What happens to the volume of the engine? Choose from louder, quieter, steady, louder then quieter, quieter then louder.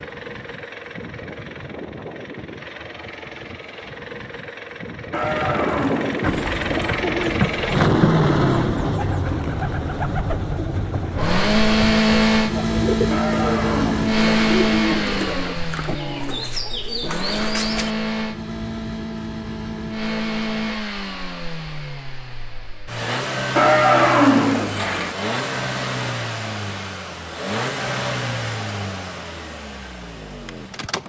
louder then quieter.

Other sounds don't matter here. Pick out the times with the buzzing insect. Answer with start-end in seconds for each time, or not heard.
not heard.